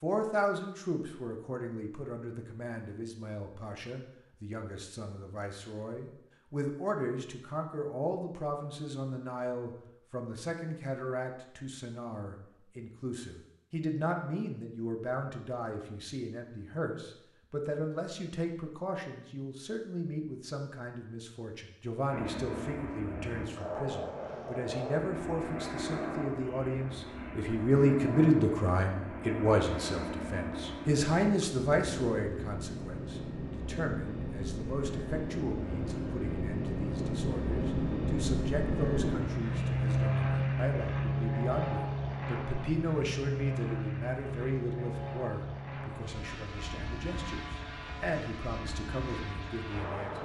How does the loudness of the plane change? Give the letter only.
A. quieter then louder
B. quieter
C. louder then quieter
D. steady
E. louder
C.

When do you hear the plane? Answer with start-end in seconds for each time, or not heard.
22.1-50.2.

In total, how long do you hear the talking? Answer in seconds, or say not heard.
50 s.